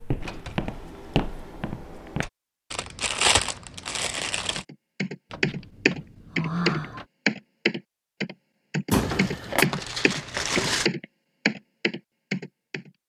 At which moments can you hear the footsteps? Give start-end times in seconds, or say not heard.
0.0-2.2.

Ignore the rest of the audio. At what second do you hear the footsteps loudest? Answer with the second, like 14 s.
1 s.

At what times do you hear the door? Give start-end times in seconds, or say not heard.
0.2-2.3, 5.3-7.0, 8.9-9.7.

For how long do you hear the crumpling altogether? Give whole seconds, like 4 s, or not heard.
4 s.